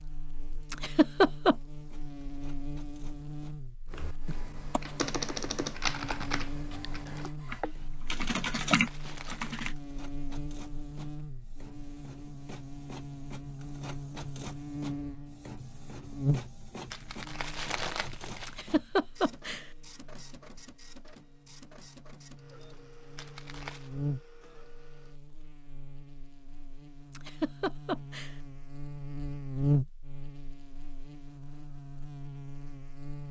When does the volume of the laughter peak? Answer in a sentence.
The volume of the laughter peaks at 1 second.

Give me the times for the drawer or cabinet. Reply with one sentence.
The drawer or cabinet can't be heard in this clip.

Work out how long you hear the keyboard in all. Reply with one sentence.
The keyboard can be heard for 6 seconds in total.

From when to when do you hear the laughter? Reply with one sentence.
The laughter can be heard from 0.7 to 1.6 s, from 18.4 to 19.6 s and from 27.1 to 28.4 s.